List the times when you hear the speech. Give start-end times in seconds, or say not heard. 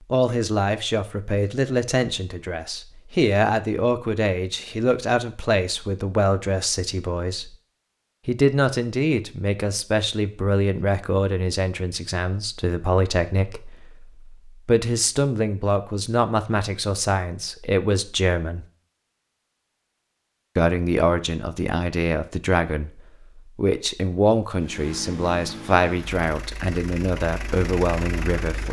0.1-7.5, 8.2-18.6, 20.6-28.6.